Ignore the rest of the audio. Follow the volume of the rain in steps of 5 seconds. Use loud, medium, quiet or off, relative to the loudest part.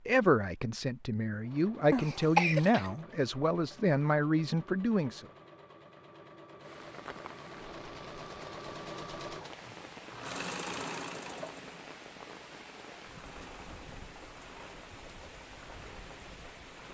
off, loud, loud, loud.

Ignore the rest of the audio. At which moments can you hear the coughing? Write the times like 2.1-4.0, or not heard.
1.9-3.0.